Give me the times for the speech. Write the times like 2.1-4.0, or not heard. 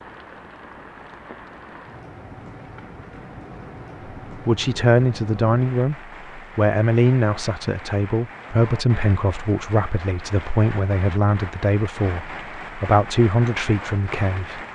4.3-14.6.